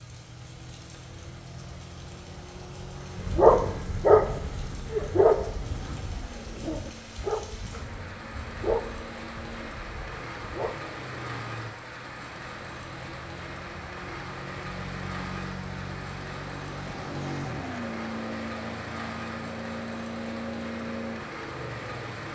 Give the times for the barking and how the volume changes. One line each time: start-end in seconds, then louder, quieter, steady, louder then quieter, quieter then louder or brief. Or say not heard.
3.1-10.8 quieter.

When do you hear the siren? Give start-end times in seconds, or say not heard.
not heard.